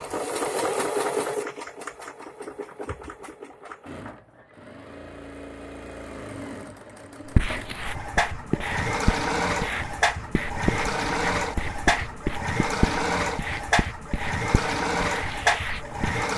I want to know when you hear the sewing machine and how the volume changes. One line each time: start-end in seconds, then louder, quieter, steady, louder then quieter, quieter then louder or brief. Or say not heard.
0.0-16.3 quieter then louder.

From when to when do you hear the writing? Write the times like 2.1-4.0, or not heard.
7.3-16.2.